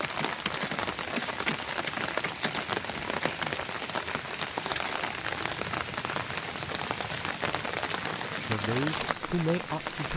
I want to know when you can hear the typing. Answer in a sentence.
You can hear the typing from 0.0 to 3.6 s.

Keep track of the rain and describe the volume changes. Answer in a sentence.
The loudness of the rain stays about the same.